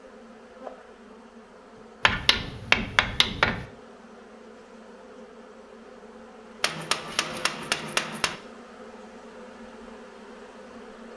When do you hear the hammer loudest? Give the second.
3 s.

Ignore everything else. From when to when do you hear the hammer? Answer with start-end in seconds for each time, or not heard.
2.0-3.6, 6.6-8.4.